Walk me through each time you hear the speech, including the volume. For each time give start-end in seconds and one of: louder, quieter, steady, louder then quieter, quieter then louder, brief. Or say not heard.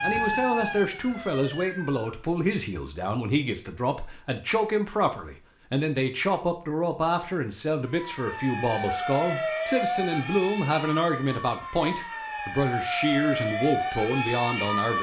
0.0-14.9 steady.